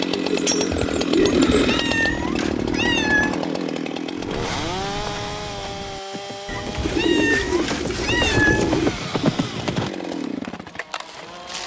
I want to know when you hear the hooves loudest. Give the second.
9 s.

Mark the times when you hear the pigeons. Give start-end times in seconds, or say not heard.
0.1-1.9, 6.8-8.9.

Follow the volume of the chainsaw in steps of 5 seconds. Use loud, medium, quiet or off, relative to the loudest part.
loud, medium, medium.